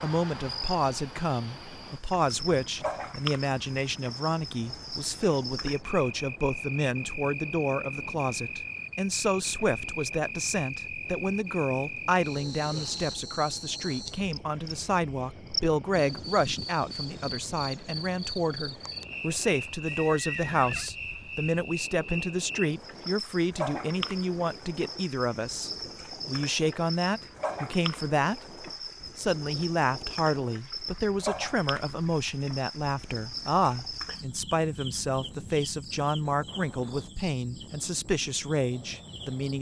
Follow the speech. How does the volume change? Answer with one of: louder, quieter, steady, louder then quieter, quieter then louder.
steady.